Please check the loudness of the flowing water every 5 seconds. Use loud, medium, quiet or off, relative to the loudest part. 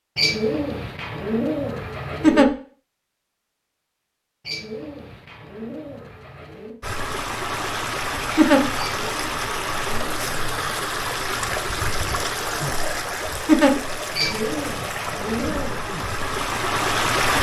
off, loud, loud, loud.